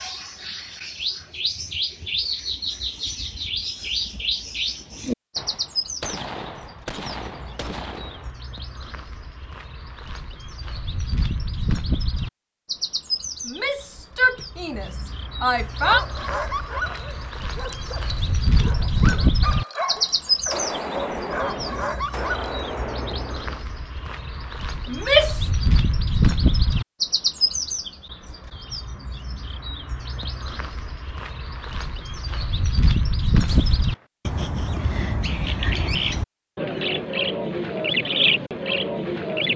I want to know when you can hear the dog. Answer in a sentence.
The dog can be heard from 15.8 to 22.8 s.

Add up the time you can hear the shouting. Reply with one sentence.
The shouting can be heard for 3 seconds in total.